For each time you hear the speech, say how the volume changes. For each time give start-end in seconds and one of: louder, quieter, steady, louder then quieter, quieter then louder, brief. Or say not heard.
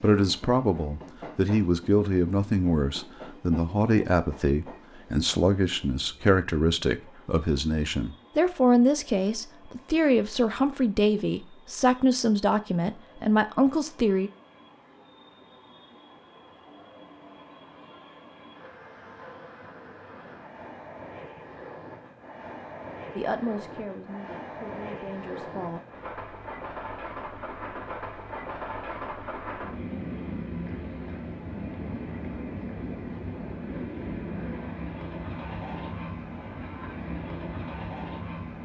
0.0-14.3 steady
23.1-25.8 brief.